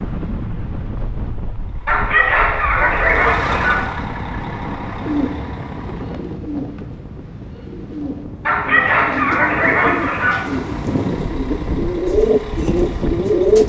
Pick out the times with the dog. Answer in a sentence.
You can hear the dog from 1.9 to 3.9 s and from 8.4 to 10.4 s.